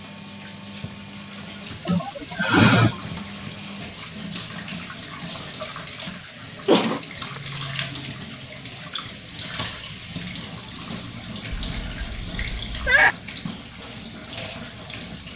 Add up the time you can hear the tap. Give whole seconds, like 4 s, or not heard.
15 s.